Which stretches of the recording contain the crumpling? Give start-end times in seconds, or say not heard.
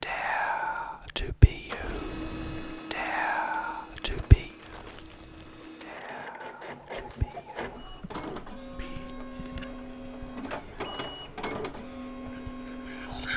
4.6-5.7.